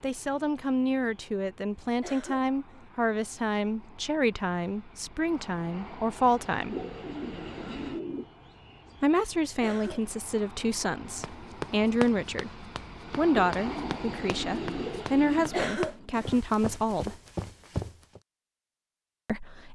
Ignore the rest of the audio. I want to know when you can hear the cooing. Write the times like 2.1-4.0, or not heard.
6.7-8.2, 13.3-15.7.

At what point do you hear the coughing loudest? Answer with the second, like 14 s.
16 s.